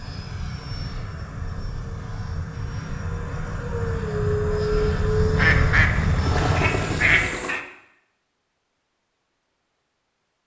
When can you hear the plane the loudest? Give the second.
5 s.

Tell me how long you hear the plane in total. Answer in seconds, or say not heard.
7 s.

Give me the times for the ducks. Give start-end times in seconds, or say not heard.
5.3-7.7.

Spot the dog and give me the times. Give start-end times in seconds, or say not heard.
not heard.